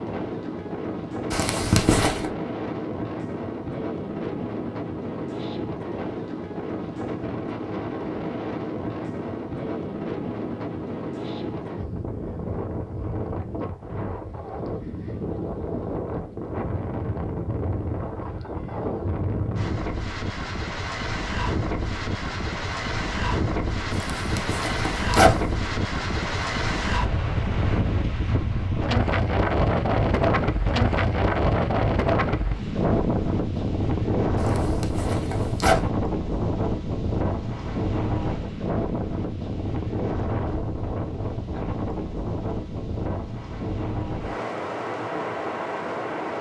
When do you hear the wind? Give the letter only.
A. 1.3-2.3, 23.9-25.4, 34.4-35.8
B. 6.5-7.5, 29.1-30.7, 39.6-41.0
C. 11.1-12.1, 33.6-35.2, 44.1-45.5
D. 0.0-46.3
D.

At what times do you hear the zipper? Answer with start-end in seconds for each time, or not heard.
1.3-2.3, 23.9-25.4, 34.4-35.8.